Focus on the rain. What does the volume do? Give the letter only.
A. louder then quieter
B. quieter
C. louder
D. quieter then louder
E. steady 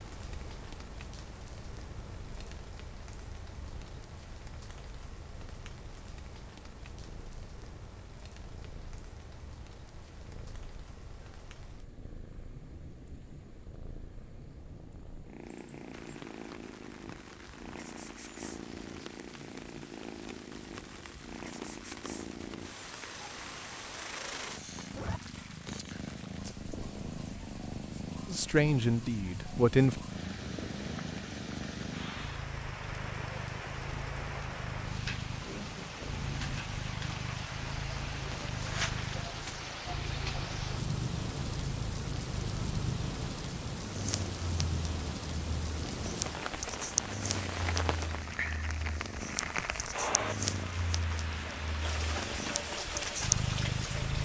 C.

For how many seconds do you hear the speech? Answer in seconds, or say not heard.
2 s.